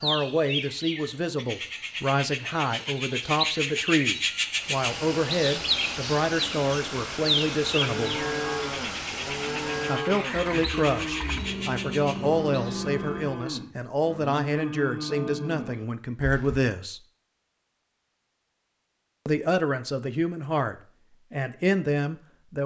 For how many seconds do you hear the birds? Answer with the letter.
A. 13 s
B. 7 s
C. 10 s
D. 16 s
A.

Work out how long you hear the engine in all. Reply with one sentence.
You can hear the engine for 9 seconds altogether.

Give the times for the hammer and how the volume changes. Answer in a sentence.
The hammer can't be heard in this clip.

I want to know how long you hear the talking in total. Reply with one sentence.
The talking can be heard for 19 seconds in total.